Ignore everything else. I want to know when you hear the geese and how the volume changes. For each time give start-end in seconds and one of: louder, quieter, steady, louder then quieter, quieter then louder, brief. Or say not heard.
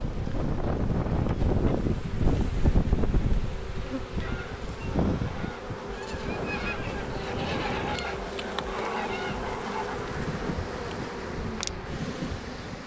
4.2-10.0 louder.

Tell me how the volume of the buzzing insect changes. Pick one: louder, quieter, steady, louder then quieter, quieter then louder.
louder.